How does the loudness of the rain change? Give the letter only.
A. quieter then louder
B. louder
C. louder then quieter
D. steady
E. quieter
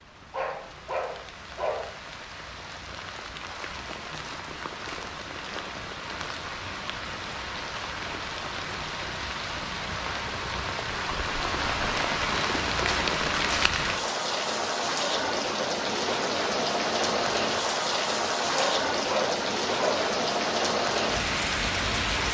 B.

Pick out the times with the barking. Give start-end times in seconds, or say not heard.
0.3-1.9, 18.5-20.1.